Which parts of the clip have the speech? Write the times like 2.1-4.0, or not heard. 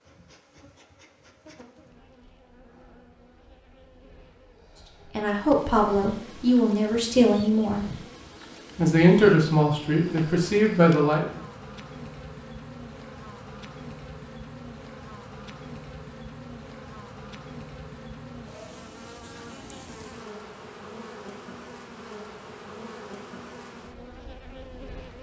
5.2-8.0, 8.8-11.4.